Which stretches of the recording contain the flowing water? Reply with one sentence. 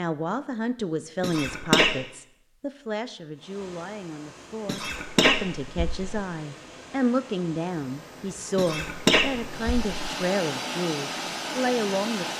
The flowing water can be heard from 3.3 to 12.3 s.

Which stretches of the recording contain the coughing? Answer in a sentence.
The coughing can be heard from 1.2 to 2.0 s, from 4.7 to 6.0 s and from 8.6 to 9.9 s.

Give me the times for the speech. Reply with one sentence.
The speech can be heard from 0.0 to 12.3 s.